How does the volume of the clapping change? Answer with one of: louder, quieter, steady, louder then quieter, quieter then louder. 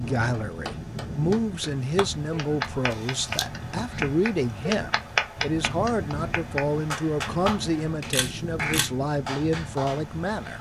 louder then quieter.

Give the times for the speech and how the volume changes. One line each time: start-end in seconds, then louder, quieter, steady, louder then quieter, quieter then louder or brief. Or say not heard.
0.0-10.5 steady.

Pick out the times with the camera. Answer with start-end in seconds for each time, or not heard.
2.9-3.5, 8.1-8.9.